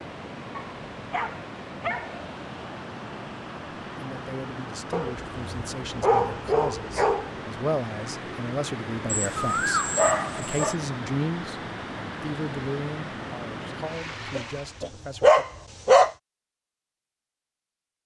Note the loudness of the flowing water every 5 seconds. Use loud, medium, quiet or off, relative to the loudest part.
loud, loud, loud, off.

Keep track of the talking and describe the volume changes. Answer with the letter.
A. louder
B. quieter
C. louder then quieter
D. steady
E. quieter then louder
C.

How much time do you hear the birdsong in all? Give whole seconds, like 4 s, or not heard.
not heard.